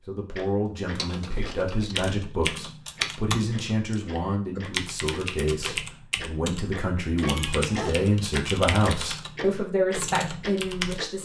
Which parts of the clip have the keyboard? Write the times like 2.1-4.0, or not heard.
0.9-11.0.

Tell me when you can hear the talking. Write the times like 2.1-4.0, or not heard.
0.1-11.2.